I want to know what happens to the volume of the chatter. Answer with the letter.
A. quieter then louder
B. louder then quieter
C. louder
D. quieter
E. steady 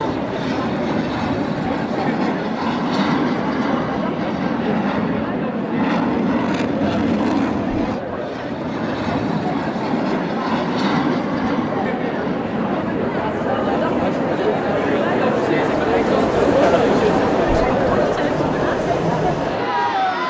C.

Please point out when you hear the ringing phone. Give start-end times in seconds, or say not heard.
not heard.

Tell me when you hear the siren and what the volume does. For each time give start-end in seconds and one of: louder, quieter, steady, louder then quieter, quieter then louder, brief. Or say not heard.
not heard.